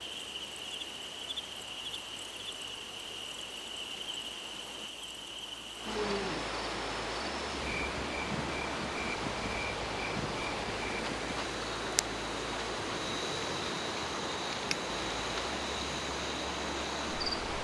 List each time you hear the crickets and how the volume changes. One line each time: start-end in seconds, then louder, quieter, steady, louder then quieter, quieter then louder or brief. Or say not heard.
0.0-17.4 steady.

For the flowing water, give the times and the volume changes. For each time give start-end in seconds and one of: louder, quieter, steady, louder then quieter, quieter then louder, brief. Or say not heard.
0.0-17.6 louder.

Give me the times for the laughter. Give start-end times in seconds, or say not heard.
not heard.